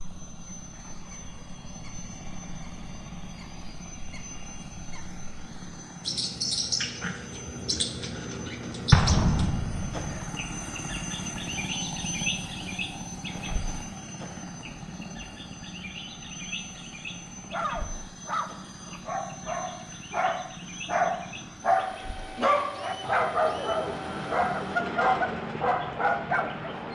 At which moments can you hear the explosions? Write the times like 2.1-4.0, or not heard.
8.9-10.2.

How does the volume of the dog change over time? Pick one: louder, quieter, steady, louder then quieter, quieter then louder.
louder.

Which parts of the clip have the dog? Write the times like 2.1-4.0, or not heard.
17.3-26.9.